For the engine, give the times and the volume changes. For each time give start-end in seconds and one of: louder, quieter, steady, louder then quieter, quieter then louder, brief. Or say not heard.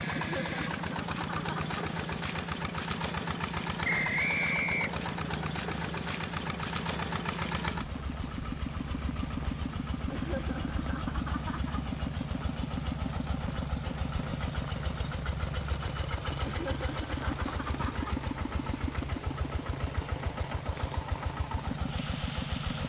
0.0-22.8 steady.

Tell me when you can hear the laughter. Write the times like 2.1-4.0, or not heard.
0.1-1.8, 10.1-11.8, 16.4-18.1.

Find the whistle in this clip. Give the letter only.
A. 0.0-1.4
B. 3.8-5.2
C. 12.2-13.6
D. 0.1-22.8
B.